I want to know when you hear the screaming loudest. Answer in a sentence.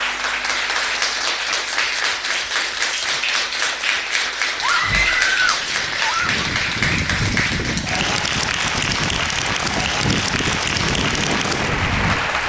The volume of the screaming peaks at 5 seconds.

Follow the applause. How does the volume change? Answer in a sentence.
The loudness of the applause stays about the same.